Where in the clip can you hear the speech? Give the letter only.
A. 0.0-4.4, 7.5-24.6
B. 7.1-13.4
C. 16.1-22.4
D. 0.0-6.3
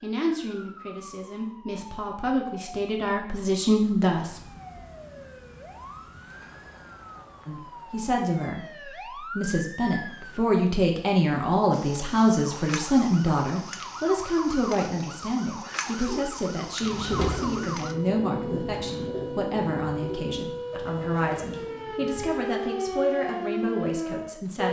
A.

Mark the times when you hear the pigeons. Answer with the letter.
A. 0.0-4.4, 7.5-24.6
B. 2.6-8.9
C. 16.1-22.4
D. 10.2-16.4
C.